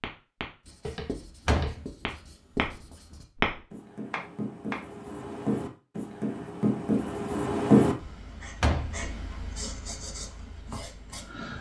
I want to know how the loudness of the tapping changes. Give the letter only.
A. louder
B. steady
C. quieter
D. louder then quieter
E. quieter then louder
D.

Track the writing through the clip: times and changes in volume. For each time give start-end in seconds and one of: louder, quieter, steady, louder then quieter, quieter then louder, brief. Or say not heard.
0.6-11.5 louder then quieter.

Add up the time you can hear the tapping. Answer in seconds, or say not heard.
5 s.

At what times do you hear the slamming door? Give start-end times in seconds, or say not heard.
1.4-1.9, 8.6-9.0.